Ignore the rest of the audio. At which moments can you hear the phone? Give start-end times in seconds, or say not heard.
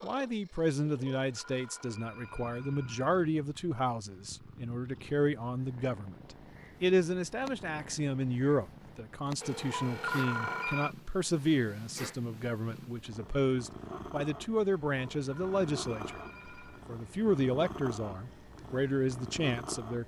0.8-3.1, 9.4-10.9, 14.7-16.9.